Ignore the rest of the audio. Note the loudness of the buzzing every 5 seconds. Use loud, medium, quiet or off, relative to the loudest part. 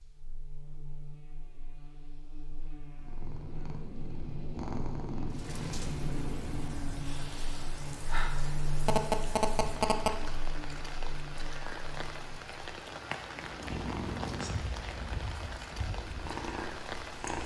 medium, loud, medium, off.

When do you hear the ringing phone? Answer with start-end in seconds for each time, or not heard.
8.8-10.2.